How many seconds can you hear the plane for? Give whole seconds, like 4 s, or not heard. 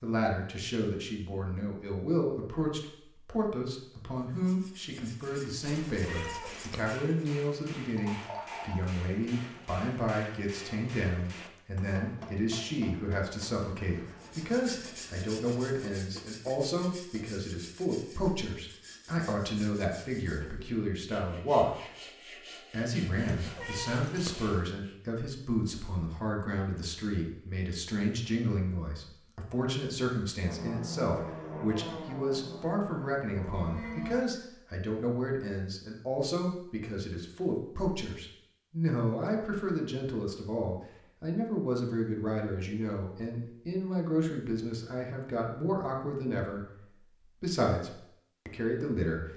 4 s.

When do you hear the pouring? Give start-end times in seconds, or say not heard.
8.0-8.8.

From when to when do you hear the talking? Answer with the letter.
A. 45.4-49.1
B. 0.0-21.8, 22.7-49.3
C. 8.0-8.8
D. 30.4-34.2
B.